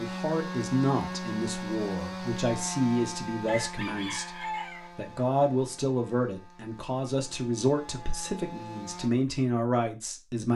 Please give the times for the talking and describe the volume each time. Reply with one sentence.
The talking can be heard from 0.0 to 10.5 s, at a steady volume.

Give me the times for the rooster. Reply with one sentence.
You can hear the rooster from 3.5 to 4.9 s.